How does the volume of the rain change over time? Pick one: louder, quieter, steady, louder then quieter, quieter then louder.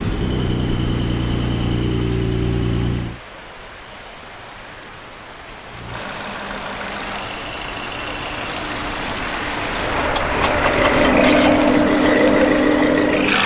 louder.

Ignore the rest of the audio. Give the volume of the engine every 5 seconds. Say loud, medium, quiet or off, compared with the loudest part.
medium, quiet, loud.